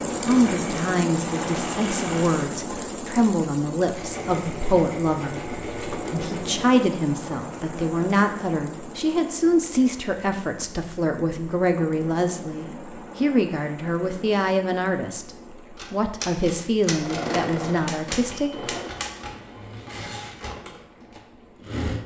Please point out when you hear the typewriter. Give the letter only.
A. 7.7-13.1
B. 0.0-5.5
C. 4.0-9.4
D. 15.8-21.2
D.